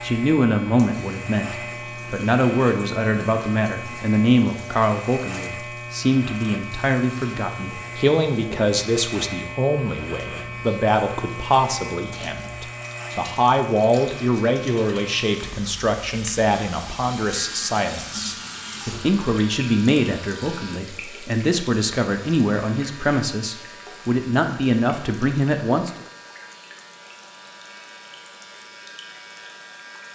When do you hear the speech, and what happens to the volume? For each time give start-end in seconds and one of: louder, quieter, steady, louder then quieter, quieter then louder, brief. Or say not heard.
0.0-25.9 steady.